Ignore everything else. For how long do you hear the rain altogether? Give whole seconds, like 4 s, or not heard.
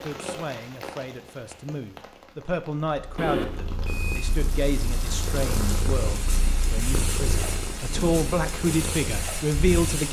10 s.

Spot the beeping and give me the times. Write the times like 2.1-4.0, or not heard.
3.1-4.3.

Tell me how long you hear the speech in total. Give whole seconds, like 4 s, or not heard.
10 s.